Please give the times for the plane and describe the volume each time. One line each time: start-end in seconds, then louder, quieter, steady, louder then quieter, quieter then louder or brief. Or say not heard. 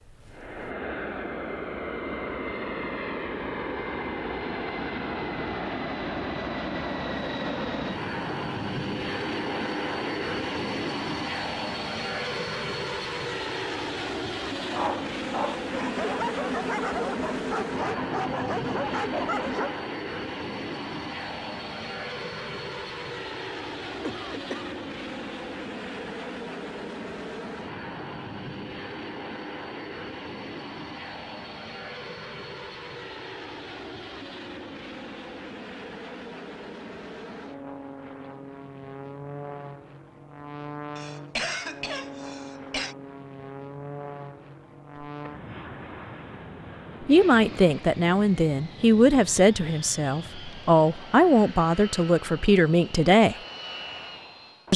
0.0-54.7 quieter.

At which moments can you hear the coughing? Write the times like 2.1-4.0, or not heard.
24.0-24.8, 41.0-43.0.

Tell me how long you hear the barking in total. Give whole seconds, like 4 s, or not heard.
5 s.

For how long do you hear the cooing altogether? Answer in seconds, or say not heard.
not heard.